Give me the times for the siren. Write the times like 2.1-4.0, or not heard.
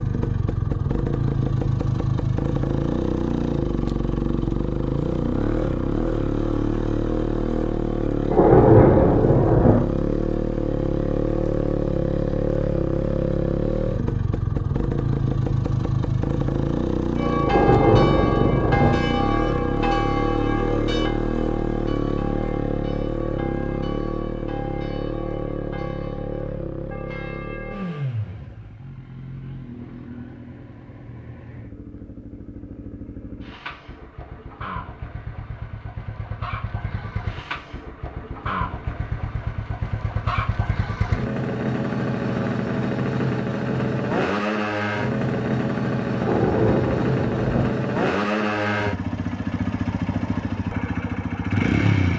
not heard.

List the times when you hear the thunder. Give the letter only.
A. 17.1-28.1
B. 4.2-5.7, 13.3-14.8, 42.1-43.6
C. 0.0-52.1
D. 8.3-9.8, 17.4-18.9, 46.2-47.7
D.